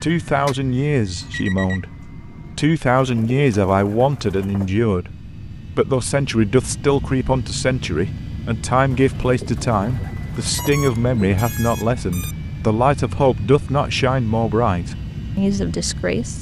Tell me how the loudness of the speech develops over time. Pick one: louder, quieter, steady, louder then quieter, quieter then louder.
steady.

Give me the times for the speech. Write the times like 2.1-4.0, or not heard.
0.0-16.3.